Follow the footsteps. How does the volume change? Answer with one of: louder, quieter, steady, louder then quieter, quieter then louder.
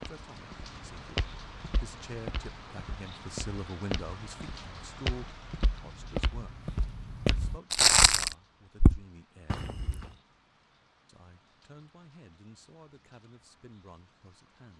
louder.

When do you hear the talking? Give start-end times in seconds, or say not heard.
0.0-9.7, 11.1-14.7.